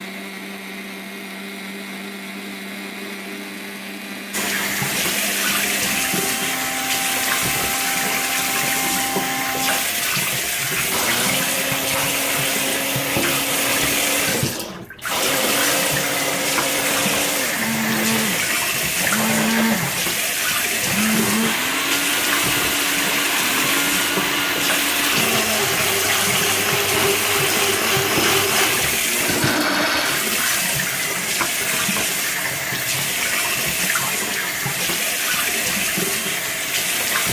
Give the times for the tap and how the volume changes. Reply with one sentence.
The tap can be heard from 4.3 to 37.2 s, at a steady volume.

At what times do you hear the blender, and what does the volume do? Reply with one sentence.
The blender can be heard from 0.0 to 30.3 s, getting louder.